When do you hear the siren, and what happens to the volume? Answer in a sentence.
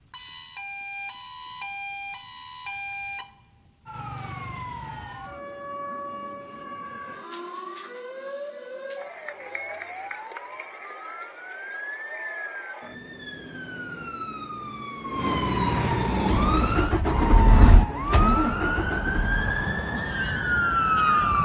You can hear the siren from 0.0 to 21.3 s, getting louder.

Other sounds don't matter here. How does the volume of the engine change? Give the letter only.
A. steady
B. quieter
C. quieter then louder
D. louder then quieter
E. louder
D.